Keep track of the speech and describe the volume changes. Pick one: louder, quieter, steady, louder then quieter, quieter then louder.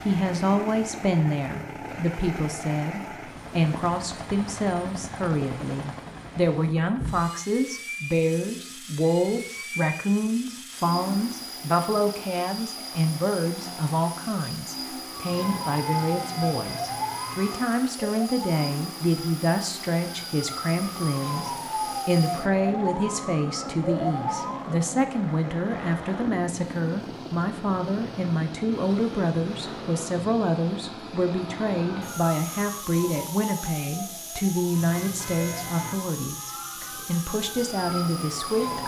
steady.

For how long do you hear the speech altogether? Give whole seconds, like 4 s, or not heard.
39 s.